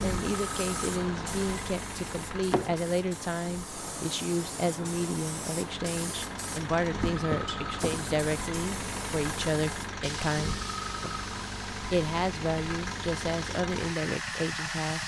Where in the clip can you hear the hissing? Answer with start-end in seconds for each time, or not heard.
0.0-15.0.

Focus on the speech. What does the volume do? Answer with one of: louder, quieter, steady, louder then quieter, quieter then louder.
steady.